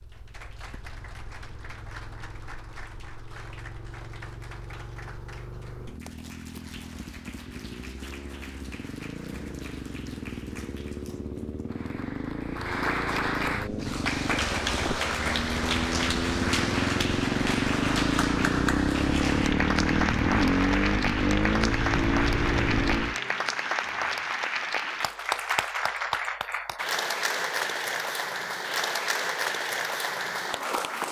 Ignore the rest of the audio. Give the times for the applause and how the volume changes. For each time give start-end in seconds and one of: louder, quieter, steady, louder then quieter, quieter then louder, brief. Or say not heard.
0.0-31.0 louder.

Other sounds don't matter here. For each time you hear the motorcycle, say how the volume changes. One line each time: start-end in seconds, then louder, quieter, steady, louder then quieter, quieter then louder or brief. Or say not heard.
0.0-23.2 louder.